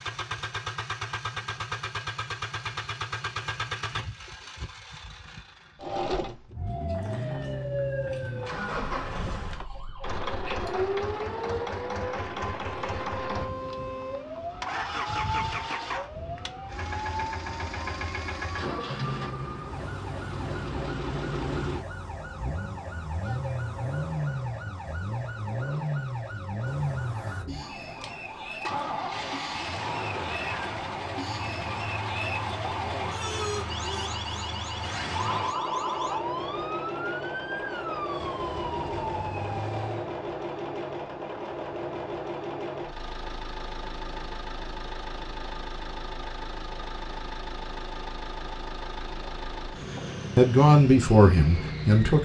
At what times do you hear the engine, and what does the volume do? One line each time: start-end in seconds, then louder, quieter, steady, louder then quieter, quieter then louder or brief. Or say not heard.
0.0-52.1 steady.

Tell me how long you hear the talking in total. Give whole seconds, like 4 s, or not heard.
2 s.